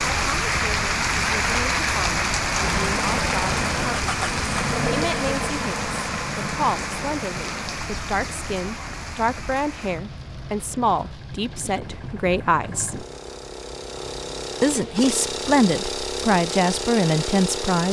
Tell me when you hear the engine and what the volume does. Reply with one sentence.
The engine can be heard from 2.5 to 17.8 s, getting quieter then louder.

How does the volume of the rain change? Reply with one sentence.
The loudness of the rain goes down.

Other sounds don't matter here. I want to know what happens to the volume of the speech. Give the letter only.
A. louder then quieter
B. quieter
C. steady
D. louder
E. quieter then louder
D.